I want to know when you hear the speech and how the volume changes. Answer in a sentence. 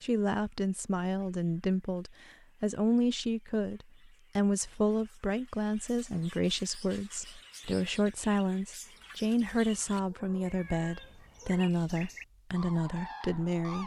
You can hear the speech from 0.0 to 13.8 s, at a steady volume.